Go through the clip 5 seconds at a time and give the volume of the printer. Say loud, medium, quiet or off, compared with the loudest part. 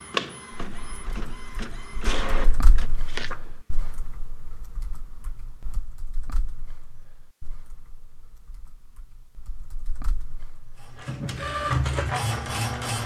medium, off, loud.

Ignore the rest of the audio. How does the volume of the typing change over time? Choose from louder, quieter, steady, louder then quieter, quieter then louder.
quieter then louder.